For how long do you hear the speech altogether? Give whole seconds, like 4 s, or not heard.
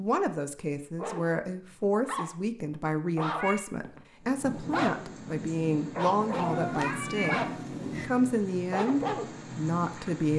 10 s.